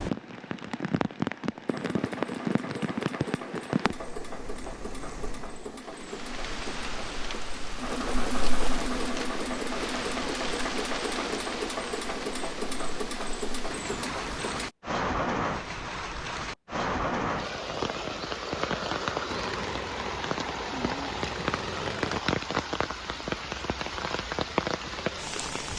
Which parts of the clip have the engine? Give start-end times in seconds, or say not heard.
1.6-14.7, 19.3-22.2.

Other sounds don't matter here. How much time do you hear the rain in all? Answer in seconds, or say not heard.
26 s.